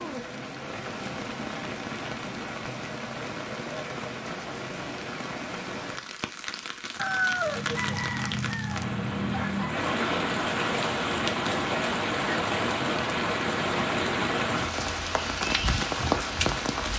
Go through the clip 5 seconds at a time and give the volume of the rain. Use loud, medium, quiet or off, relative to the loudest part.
medium, medium, loud, loud.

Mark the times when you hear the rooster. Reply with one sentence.
You can hear the rooster from 7.0 to 9.8 s.